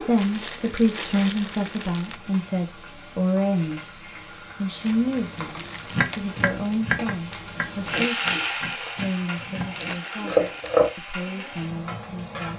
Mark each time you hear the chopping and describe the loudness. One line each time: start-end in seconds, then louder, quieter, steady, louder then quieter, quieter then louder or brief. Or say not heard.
5.9-10.9 quieter then louder.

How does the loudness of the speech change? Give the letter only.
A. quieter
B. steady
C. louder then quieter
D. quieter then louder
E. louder
A.